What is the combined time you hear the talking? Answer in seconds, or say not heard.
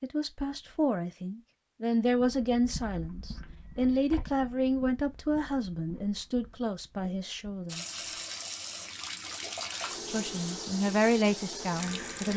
10 s.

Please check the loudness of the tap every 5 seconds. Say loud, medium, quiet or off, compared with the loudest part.
off, loud, loud.